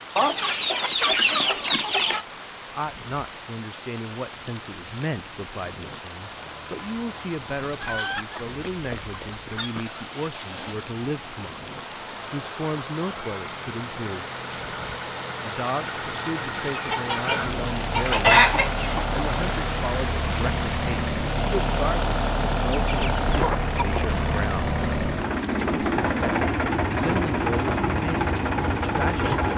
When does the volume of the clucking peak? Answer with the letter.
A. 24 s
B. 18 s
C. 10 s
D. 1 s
B.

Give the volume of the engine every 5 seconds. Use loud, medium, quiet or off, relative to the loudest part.
off, quiet, quiet, medium, loud, loud.